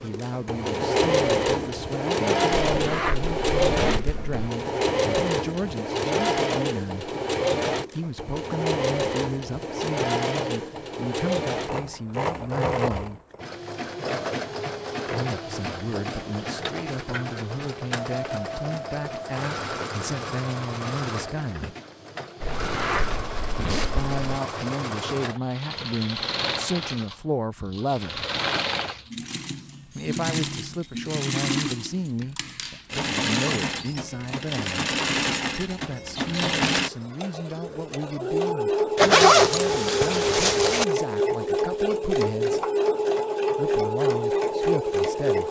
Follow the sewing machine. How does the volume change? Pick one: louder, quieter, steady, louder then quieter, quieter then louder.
quieter then louder.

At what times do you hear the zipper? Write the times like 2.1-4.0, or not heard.
2.6-4.5, 22.4-24.1, 39.0-40.9.